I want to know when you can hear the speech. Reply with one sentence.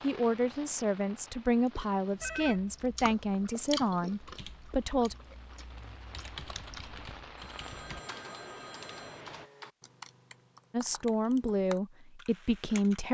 You can hear the speech from 0.0 to 5.2 s and from 10.7 to 13.0 s.